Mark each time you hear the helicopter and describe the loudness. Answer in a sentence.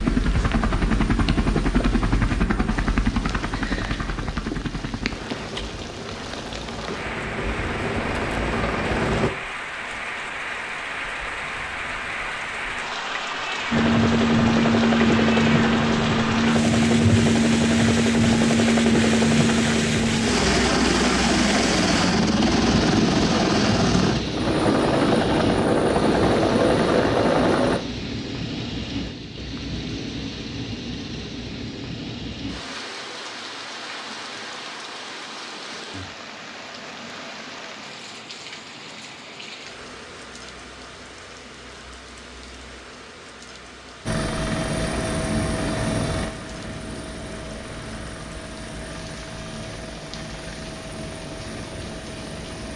The helicopter can be heard from 0.0 to 9.3 s, getting quieter then louder; from 13.7 to 27.8 s, at a steady volume; and from 44.0 to 52.7 s, getting quieter.